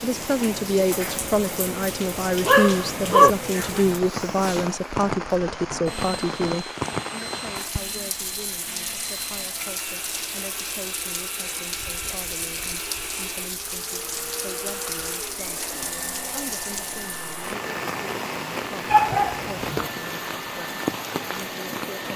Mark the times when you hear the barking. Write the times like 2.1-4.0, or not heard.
2.5-3.3, 18.9-19.7.